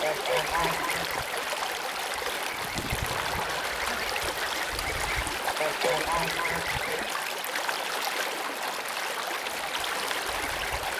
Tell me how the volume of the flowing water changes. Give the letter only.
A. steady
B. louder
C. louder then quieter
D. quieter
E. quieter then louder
A.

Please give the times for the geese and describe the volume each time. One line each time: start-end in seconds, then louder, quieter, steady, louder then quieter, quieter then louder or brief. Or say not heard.
0.0-7.1 quieter then louder
9.6-10.9 brief.